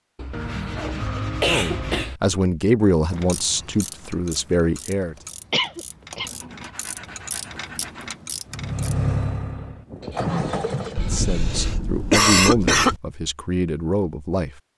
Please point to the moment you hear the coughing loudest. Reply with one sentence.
The volume of the coughing peaks at 12 seconds.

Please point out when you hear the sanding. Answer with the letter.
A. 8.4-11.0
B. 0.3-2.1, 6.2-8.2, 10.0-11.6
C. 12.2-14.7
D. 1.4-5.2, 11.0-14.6
B.